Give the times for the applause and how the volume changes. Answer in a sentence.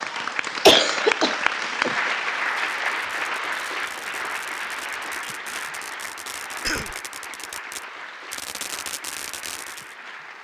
You can hear the applause from 0.0 to 10.3 s, getting quieter.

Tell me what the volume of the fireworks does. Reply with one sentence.
The volume of the fireworks goes up.